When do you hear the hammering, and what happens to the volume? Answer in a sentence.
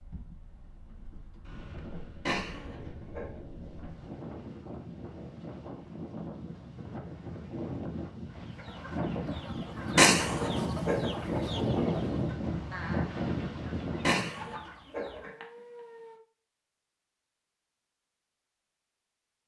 You can't hear the hammering here.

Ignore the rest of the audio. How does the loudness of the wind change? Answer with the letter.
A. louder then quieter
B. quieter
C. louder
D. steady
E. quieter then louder
C.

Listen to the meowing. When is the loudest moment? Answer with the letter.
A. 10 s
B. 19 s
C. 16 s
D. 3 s
A.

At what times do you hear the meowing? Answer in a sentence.
The meowing can be heard from 2.2 to 3.3 s, from 9.9 to 11.0 s and from 14.0 to 16.1 s.